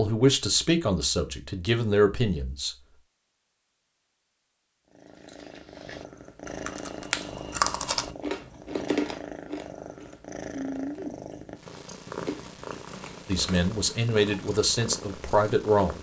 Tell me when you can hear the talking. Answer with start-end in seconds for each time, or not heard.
0.0-2.8, 13.2-15.9.